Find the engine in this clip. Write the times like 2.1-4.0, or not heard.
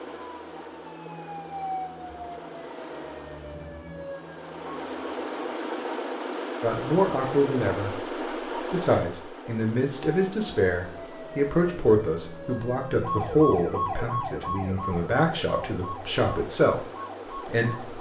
0.0-17.9.